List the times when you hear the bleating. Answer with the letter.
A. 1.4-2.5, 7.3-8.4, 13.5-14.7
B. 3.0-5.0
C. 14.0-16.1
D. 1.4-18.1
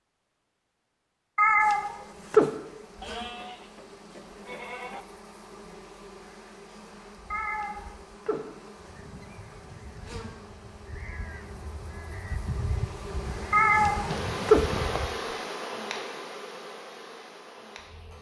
B.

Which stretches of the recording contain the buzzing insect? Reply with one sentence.
You can hear the buzzing insect from 1.4 to 18.1 s.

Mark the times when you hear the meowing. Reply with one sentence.
The meowing can be heard from 1.4 to 2.5 s, from 7.3 to 8.4 s and from 13.5 to 14.7 s.